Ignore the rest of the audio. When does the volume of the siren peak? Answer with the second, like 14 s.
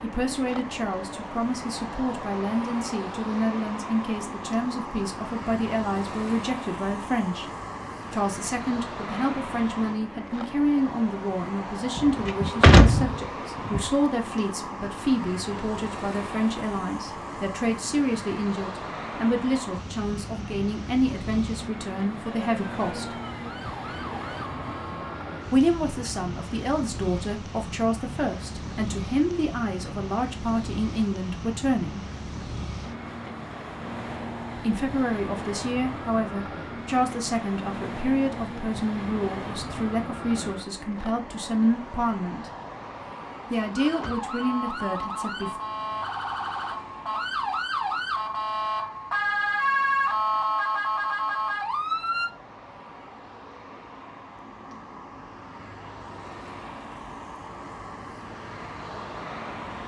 50 s.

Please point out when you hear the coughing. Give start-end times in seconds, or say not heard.
not heard.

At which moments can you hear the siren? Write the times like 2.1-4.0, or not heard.
22.3-25.2, 43.8-52.3.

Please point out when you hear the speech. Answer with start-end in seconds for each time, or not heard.
0.0-7.5, 8.1-23.1, 25.5-32.0, 34.5-42.5, 43.5-45.5.